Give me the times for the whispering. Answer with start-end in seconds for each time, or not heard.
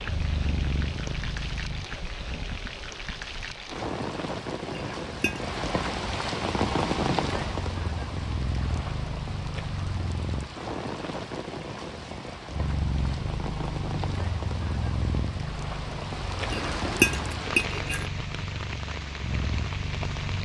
not heard.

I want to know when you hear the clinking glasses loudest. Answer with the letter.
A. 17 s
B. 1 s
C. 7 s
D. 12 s
A.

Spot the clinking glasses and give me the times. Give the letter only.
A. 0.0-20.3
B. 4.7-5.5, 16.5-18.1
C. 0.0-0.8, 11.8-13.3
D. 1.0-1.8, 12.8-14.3
B.